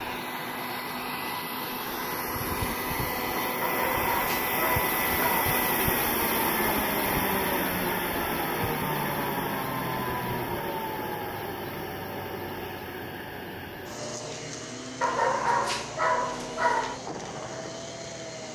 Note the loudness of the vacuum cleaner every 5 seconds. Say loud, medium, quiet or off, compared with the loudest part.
loud, loud, medium, medium.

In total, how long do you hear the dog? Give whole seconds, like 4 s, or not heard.
4 s.